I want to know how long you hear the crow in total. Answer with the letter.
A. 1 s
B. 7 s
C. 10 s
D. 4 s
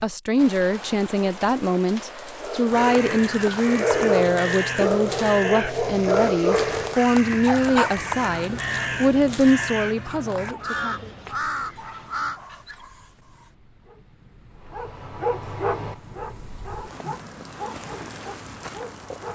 C.